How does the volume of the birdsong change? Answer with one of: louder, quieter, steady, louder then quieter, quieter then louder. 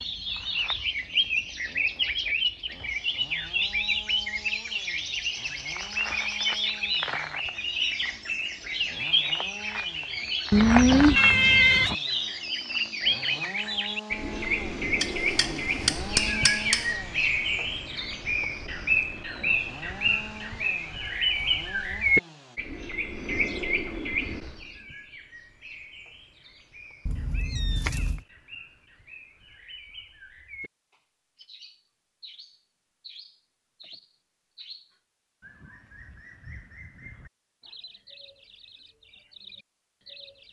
quieter.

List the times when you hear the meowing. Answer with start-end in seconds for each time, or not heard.
10.5-11.9, 27.1-28.2.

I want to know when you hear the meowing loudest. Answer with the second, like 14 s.
11 s.